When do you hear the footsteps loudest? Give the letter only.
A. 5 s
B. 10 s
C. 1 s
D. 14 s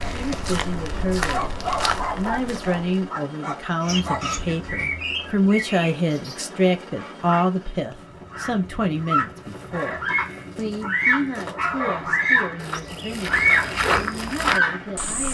D.